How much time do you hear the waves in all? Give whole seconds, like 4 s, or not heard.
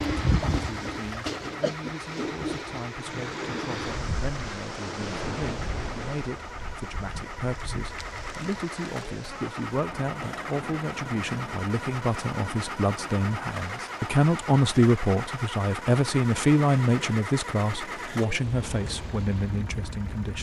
20 s.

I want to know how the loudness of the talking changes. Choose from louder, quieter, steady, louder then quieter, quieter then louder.
louder.